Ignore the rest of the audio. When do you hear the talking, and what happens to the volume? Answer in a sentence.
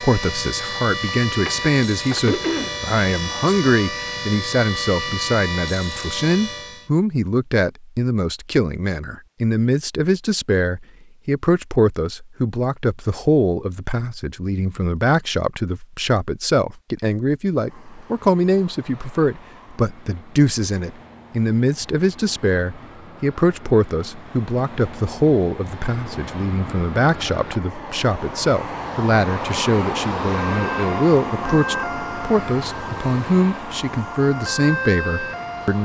You can hear the talking from 0.0 to 35.8 s, at a steady volume.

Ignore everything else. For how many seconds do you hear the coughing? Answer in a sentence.
The coughing can be heard for 2 seconds in total.